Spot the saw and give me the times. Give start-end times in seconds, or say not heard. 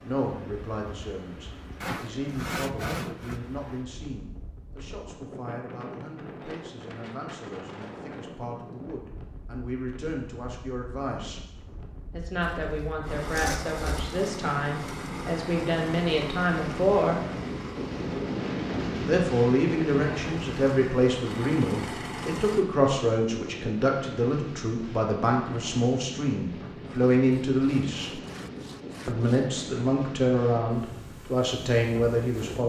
1.8-3.4, 12.4-14.1, 26.9-29.6.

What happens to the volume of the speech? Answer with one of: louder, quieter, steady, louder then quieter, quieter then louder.
louder.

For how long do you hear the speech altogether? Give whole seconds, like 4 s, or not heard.
29 s.